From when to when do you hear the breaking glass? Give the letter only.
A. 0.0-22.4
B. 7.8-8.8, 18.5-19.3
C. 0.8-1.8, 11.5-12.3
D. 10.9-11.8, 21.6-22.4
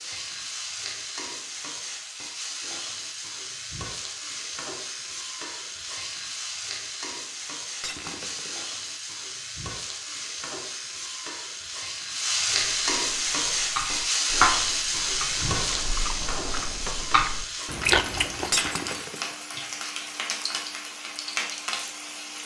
B.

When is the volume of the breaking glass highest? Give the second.
19 s.